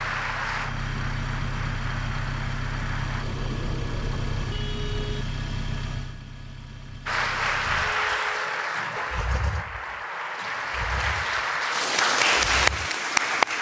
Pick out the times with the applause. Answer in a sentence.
The applause can be heard from 0.0 to 3.2 s and from 7.0 to 13.5 s.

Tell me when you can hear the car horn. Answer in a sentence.
The car horn can be heard from 3.2 to 5.2 s and from 7.8 to 9.3 s.